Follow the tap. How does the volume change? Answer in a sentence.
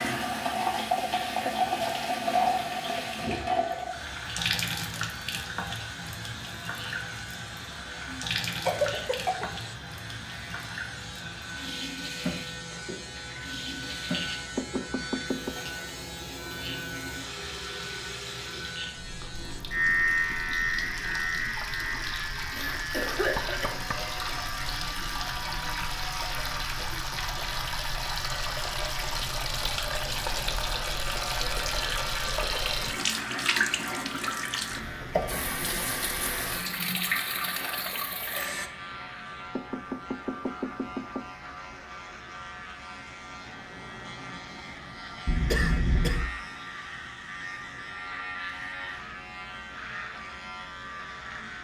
The loudness of the tap goes down, then up.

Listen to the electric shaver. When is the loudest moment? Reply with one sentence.
The loudest moment of the electric shaver is at 20 seconds.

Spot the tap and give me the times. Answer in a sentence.
You can hear the tap from 0.0 to 38.7 s.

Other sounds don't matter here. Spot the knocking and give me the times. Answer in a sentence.
You can hear the knocking from 14.6 to 15.6 s, from 23.4 to 24.2 s and from 39.5 to 41.3 s.